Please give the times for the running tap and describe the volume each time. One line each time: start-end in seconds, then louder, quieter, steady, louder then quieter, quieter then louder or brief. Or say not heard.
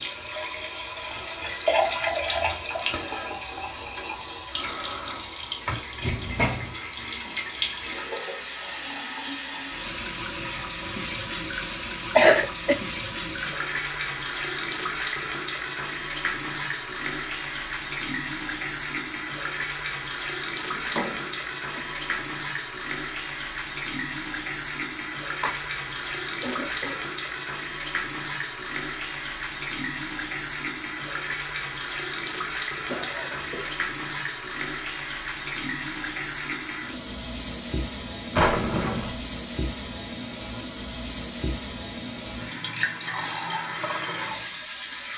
0.0-45.1 steady.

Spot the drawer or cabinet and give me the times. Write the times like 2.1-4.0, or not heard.
6.0-6.8, 20.6-22.2, 38.3-39.1.